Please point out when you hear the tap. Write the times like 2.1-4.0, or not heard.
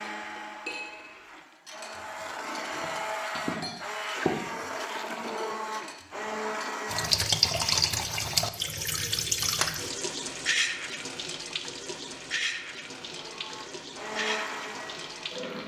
6.8-15.6.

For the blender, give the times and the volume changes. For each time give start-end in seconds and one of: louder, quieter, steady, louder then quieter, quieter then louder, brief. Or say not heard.
0.0-7.1 louder
12.9-15.5 brief.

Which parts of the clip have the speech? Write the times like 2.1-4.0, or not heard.
not heard.